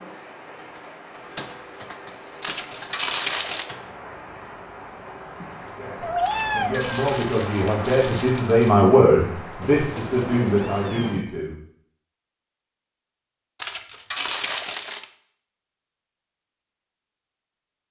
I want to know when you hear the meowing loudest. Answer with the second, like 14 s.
6 s.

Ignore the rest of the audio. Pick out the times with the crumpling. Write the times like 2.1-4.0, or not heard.
2.4-3.6, 6.2-8.9, 13.6-15.1.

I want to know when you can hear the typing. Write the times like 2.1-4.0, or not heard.
0.0-3.8.